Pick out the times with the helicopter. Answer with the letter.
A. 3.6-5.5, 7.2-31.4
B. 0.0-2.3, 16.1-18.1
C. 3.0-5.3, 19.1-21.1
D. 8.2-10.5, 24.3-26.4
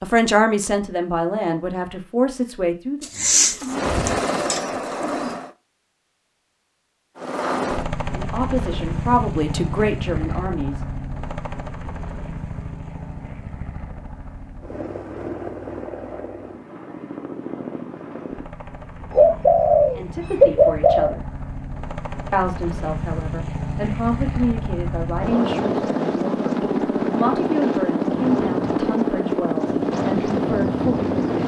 A.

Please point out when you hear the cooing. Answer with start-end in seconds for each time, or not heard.
3.0-5.3, 19.1-21.1.